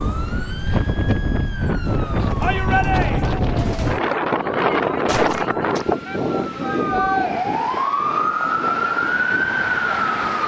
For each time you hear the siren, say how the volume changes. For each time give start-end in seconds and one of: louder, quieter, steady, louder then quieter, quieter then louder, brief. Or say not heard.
0.0-10.4 louder.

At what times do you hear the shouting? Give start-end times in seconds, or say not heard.
2.4-3.4, 6.0-7.3.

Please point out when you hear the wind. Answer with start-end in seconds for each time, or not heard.
0.0-10.4.